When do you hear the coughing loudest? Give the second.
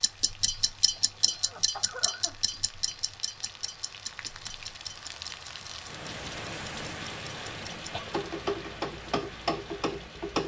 2 s.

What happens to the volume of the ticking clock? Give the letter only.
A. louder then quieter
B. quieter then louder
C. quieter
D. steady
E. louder
B.